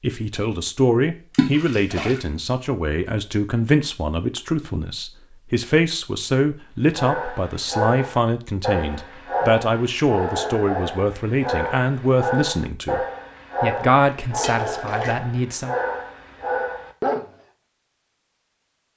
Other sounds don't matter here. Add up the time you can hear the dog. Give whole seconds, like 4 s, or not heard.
10 s.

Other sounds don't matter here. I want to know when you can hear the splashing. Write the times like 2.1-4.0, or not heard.
1.3-2.2, 14.3-15.2.